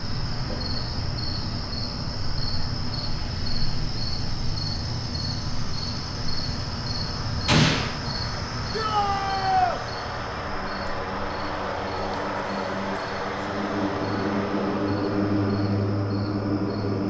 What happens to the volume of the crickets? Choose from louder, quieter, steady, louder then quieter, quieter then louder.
quieter.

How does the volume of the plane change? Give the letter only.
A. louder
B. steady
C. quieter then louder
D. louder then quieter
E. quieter
A.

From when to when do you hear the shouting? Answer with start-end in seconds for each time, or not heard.
8.7-9.8.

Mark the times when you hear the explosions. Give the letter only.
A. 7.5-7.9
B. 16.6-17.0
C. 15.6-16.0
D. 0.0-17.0
A.